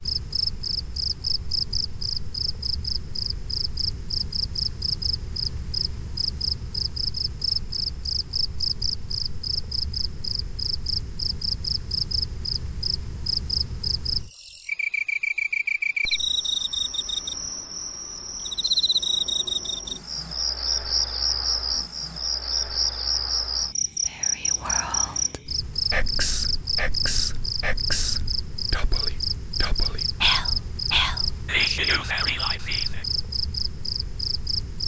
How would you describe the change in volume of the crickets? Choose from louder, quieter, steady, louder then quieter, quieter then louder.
steady.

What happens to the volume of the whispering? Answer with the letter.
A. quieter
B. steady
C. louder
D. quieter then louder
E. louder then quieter
C.